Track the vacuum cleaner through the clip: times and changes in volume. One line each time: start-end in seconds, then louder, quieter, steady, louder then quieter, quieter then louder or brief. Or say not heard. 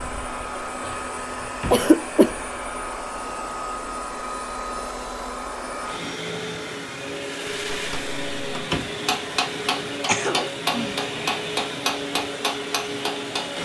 0.0-13.5 steady.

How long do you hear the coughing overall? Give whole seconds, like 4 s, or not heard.
2 s.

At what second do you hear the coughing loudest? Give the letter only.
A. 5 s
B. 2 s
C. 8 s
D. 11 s
B.